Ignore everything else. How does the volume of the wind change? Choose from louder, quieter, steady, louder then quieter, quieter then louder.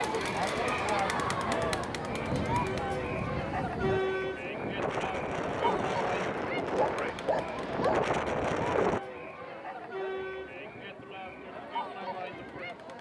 louder.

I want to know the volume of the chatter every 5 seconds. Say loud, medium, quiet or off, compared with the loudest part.
loud, medium, medium.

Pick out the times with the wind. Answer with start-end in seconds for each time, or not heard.
0.0-9.0.